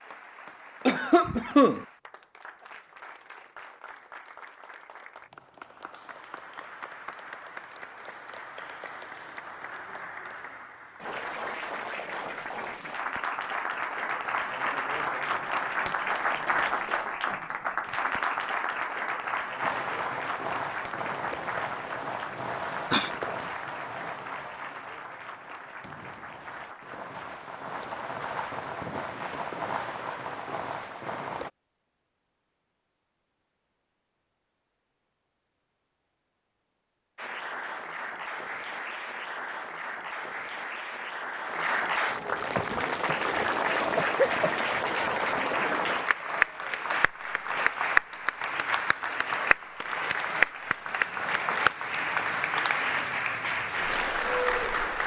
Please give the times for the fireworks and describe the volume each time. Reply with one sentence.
The fireworks can be heard from 19.6 to 31.5 s, getting quieter then louder.